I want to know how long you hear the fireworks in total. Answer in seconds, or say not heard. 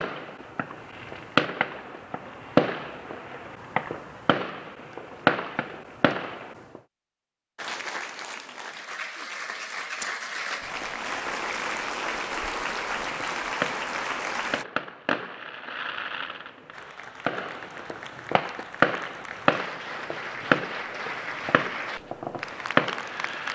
17 s.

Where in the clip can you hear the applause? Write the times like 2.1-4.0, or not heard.
7.5-14.7, 16.7-23.4.